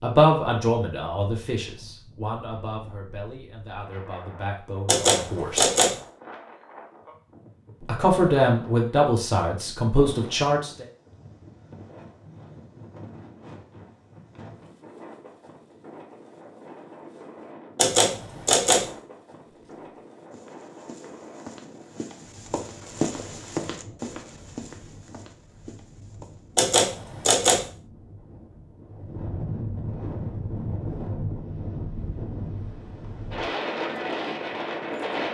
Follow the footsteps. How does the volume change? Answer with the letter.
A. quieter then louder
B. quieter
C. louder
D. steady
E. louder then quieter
E.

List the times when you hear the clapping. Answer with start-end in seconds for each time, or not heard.
not heard.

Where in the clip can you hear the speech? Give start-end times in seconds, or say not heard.
0.0-5.7, 7.8-10.8.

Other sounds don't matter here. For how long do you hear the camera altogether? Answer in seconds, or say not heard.
3 s.